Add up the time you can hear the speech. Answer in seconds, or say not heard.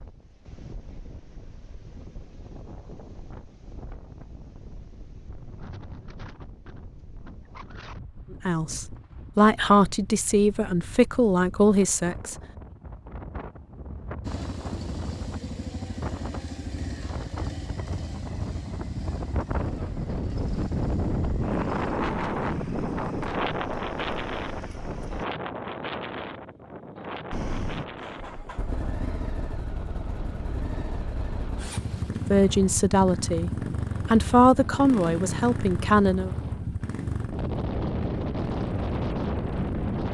8 s.